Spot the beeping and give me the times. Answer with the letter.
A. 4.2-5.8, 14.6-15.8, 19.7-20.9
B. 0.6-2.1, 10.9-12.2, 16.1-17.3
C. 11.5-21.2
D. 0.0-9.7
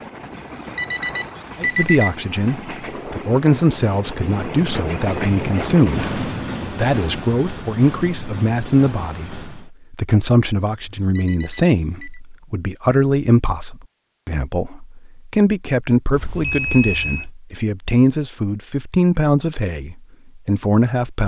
B.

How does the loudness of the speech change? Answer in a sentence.
The volume of the speech stays about the same.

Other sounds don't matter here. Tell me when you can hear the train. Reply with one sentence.
The train can be heard from 0.0 to 9.7 s.